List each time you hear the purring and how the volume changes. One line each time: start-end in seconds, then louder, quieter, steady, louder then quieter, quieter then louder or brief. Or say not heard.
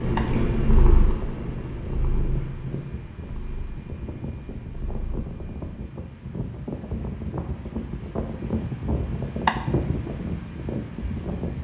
0.0-5.7 quieter.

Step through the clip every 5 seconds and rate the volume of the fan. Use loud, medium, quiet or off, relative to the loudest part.
medium, loud, loud.